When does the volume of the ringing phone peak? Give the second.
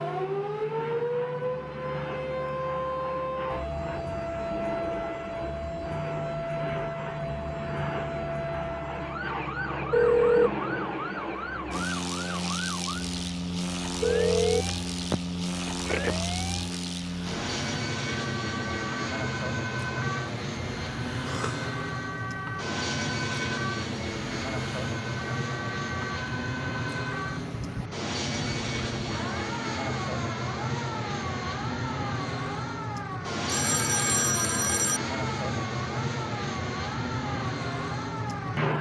10 s.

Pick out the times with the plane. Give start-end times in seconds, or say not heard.
0.0-38.7.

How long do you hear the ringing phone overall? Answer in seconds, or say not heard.
4 s.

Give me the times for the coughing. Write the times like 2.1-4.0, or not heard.
21.2-21.7.